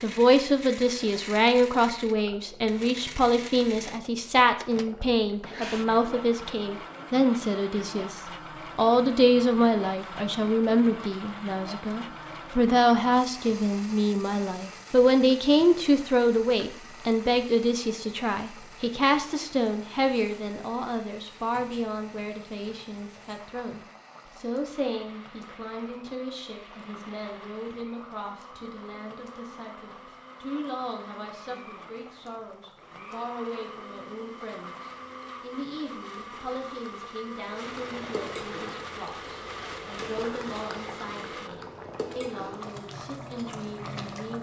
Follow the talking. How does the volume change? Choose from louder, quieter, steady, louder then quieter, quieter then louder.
quieter.